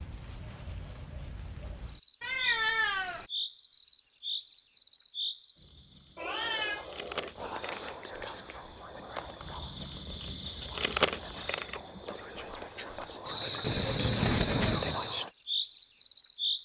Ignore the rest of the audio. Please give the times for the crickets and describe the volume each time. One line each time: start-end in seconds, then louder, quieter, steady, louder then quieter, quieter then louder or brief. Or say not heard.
0.0-16.6 louder then quieter.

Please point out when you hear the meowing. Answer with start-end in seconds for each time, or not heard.
2.2-3.2, 6.2-7.3, 13.6-15.0.